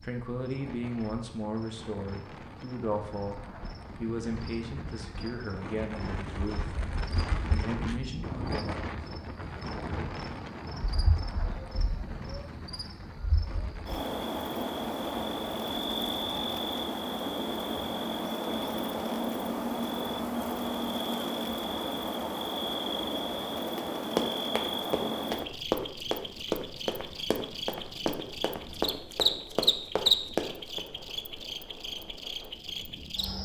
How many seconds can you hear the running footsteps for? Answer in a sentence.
The running footsteps can be heard for 7 seconds in total.